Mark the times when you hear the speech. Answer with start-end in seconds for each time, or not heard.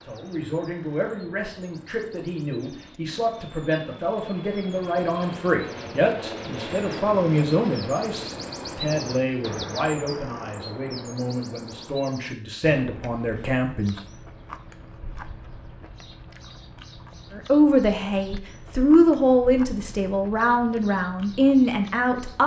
0.0-13.9, 17.3-22.4.